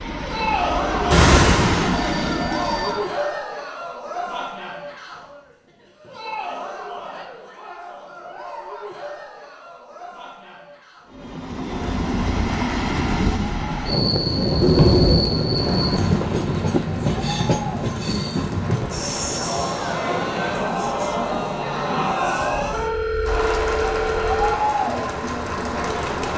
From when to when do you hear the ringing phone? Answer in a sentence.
The ringing phone can be heard from 1.1 to 3.0 s, from 14.6 to 15.3 s and from 22.6 to 24.6 s.